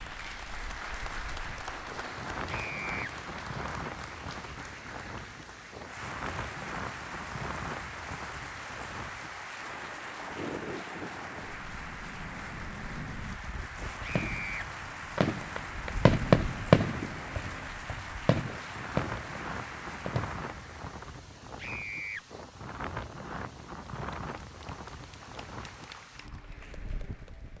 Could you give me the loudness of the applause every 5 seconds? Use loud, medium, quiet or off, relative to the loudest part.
loud, loud, loud, loud, medium, medium.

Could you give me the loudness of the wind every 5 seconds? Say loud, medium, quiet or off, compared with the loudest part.
loud, loud, loud, loud, loud, medium.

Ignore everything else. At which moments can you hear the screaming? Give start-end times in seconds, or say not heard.
2.5-3.1, 14.0-14.7, 21.6-22.2.